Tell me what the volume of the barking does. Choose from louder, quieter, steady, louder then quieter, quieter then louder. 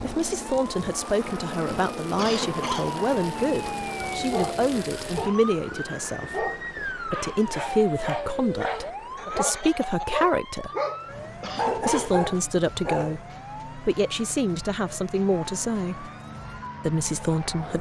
louder.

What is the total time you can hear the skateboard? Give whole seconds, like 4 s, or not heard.
not heard.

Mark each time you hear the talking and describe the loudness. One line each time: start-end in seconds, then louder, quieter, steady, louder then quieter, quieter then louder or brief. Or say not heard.
0.0-10.7 steady
11.8-16.1 steady
16.9-17.7 brief.